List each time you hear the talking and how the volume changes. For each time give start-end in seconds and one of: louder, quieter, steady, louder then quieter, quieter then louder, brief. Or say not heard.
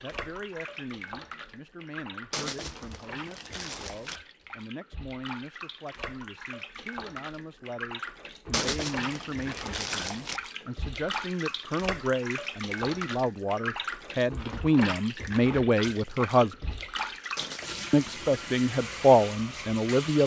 0.0-16.6 louder
17.9-20.2 brief.